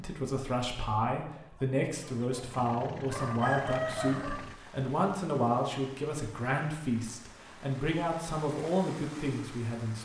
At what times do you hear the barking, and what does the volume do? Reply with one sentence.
The barking can't be heard in this clip.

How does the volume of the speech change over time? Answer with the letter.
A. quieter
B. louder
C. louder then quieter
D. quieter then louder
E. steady
E.